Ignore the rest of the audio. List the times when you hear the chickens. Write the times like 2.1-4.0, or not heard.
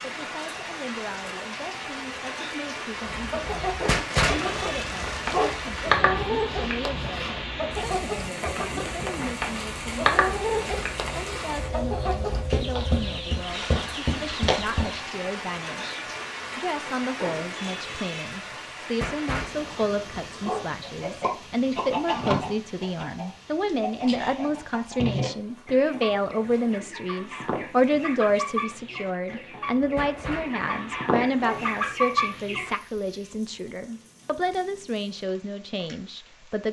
2.9-15.1, 20.8-32.7.